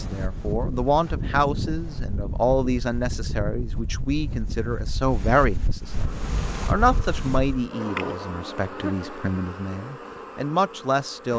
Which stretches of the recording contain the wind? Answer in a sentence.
You can hear the wind from 0.0 to 7.7 s.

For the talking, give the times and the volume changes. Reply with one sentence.
You can hear the talking from 0.0 to 11.3 s, at a steady volume.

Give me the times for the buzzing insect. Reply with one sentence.
The buzzing insect can be heard from 5.8 to 11.3 s.